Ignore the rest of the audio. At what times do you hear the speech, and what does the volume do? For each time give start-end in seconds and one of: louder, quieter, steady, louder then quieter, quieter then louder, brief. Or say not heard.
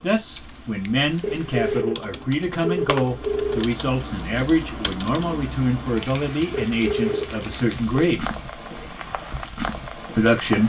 0.0-8.3 steady
10.2-10.6 brief.